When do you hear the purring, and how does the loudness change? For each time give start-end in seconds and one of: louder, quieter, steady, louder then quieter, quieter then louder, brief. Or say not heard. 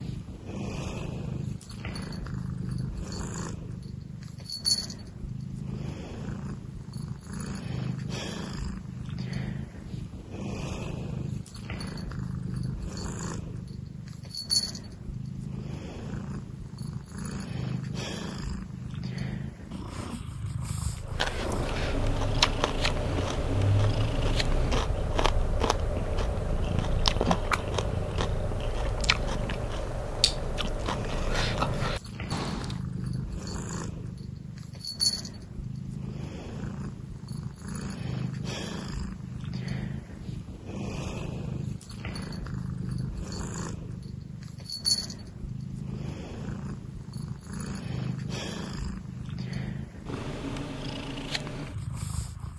0.0-52.5 steady.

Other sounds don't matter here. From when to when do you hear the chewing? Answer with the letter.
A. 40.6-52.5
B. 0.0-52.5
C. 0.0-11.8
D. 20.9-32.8
D.